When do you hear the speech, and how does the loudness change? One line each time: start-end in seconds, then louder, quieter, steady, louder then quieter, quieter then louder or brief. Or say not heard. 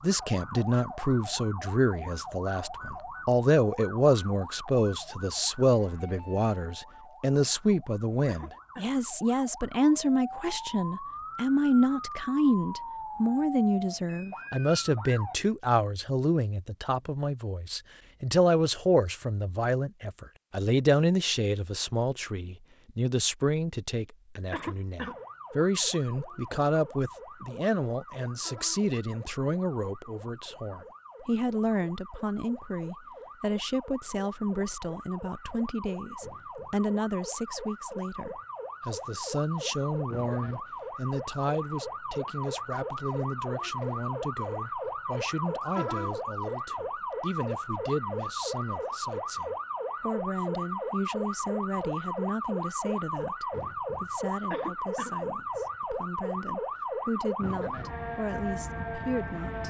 0.0-59.6 quieter.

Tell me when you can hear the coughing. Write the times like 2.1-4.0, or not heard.
8.2-8.9, 24.5-25.2, 54.5-55.1.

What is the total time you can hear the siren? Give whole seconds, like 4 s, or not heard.
50 s.